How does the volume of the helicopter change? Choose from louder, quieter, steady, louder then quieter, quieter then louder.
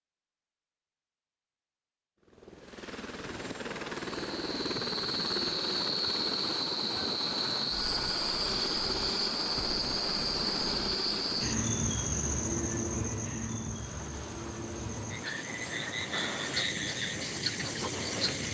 quieter.